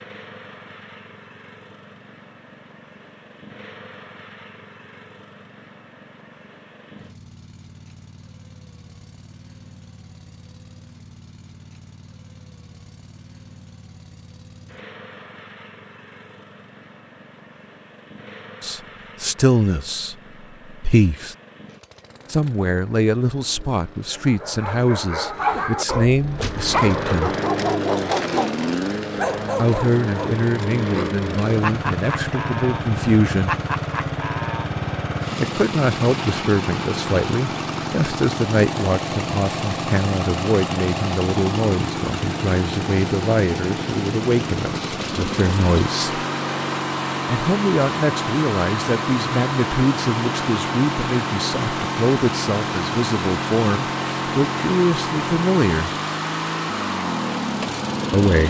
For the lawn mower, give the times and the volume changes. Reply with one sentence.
The lawn mower can be heard from 0.0 to 58.4 s, getting louder.